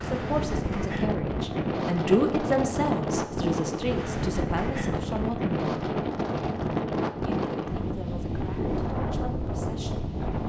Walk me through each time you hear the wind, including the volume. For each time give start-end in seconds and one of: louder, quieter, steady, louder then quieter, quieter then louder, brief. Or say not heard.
0.0-10.4 steady.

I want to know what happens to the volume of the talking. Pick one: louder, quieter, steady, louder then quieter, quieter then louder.
louder then quieter.